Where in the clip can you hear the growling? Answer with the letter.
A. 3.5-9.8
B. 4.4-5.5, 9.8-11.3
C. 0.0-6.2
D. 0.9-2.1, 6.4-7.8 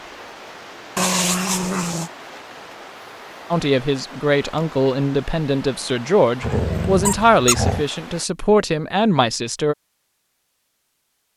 D.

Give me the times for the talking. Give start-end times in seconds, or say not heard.
3.5-9.8.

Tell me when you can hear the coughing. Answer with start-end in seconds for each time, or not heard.
not heard.